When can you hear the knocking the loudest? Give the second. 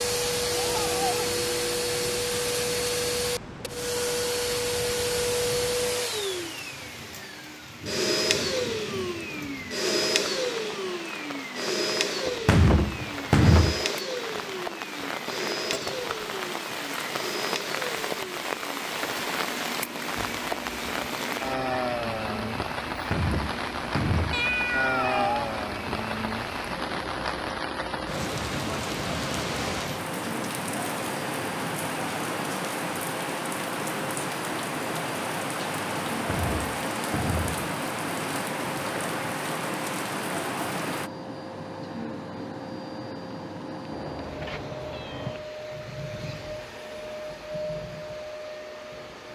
13 s.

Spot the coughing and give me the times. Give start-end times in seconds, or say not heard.
not heard.